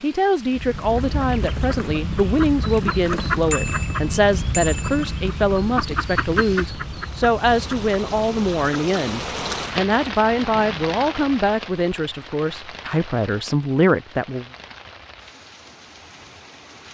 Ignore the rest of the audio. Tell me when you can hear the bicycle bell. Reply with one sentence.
You can hear the bicycle bell from 3.5 to 5.2 s.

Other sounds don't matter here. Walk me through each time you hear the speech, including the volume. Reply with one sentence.
The speech can be heard from 0.0 to 14.4 s, at a steady volume.